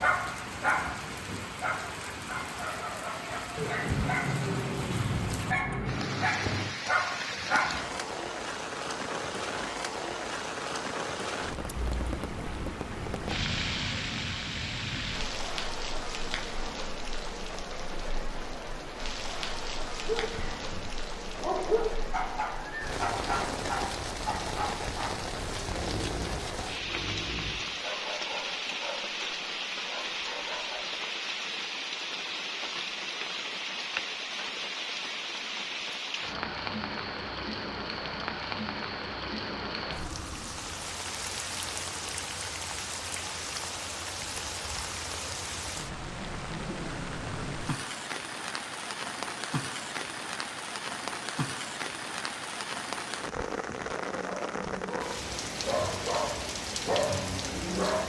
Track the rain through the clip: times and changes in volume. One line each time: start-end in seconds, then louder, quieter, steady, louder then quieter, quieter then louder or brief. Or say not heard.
0.0-58.0 steady.